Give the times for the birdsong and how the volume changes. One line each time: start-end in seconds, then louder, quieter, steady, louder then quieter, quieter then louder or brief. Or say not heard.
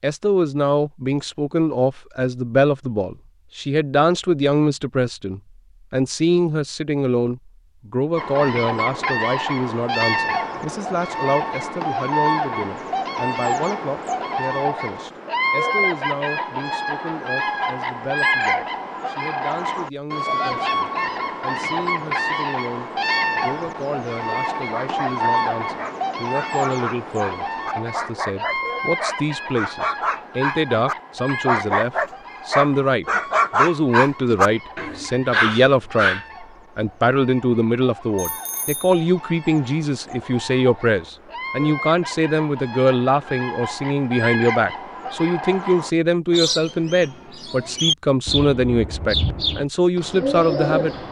8.2-51.0 quieter then louder.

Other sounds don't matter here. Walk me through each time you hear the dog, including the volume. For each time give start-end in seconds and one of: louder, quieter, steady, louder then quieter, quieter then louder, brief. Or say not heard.
24.6-36.2 louder.